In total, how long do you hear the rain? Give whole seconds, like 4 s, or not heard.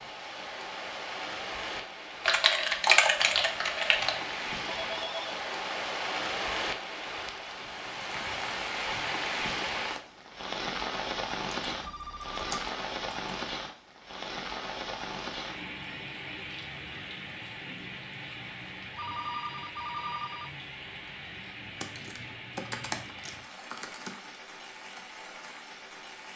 26 s.